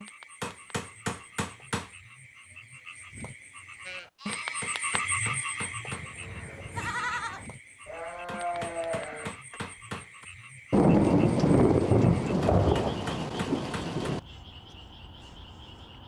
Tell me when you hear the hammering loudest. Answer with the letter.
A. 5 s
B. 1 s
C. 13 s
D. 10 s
B.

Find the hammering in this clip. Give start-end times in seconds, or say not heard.
0.4-1.9, 4.2-6.2, 8.2-10.2, 12.4-14.2.